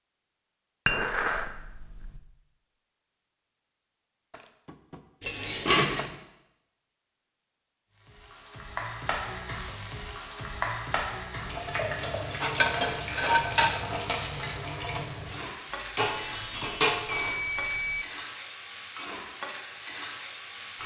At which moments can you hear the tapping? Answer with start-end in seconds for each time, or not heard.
4.3-6.1.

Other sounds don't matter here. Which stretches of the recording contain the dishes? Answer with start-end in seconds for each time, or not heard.
0.8-2.2, 5.2-6.2, 11.8-13.8, 15.7-17.4.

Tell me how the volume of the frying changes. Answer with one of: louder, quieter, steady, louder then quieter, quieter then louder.
steady.